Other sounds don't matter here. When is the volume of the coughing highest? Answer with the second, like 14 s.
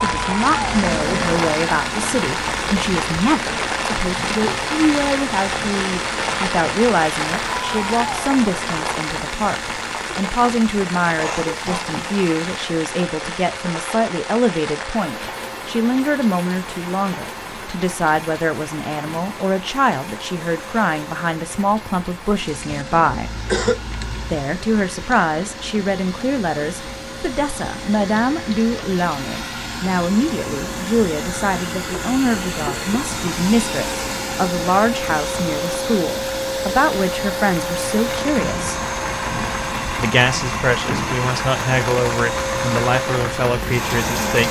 24 s.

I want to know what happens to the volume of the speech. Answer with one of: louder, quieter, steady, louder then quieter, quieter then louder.
steady.